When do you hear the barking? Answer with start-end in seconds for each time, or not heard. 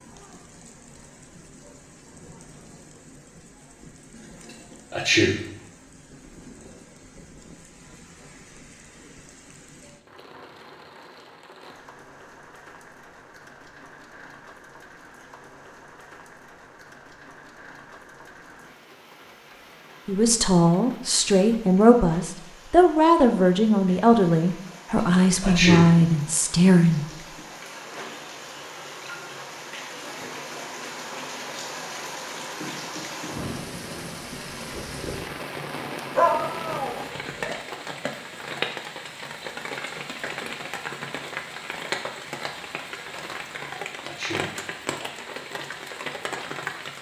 36.1-37.5.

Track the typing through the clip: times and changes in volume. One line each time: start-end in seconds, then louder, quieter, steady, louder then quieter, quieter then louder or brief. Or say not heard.
not heard.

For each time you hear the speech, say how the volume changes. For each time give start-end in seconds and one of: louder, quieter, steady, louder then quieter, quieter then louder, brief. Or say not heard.
20.1-27.0 steady.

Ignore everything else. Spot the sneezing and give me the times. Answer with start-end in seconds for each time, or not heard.
4.9-5.4, 25.4-25.9, 44.0-44.5.